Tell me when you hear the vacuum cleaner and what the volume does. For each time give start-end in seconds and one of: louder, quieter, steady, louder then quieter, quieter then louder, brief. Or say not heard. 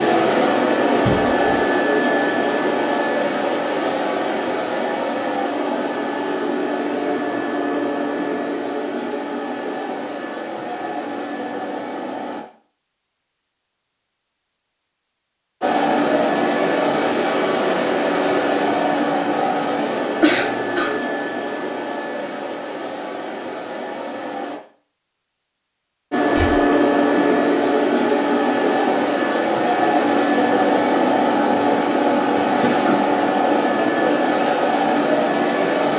0.0-12.4 quieter
15.6-24.6 quieter
26.1-35.9 steady.